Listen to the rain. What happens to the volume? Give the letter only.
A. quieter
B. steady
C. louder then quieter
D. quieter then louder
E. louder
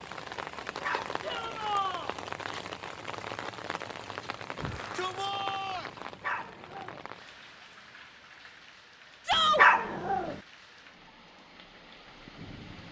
A.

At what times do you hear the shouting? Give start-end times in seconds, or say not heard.
1.2-2.1, 4.5-5.9, 9.2-9.7.